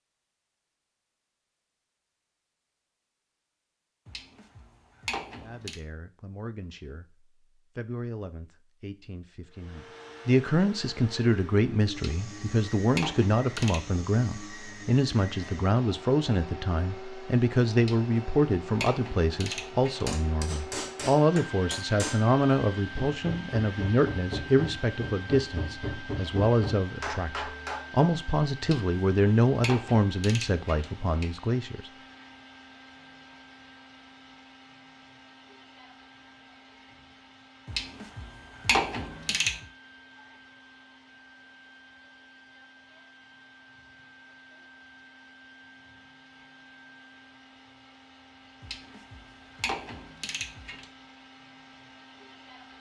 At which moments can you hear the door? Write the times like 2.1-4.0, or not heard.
not heard.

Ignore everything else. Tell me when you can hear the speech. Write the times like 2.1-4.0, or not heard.
5.3-31.9.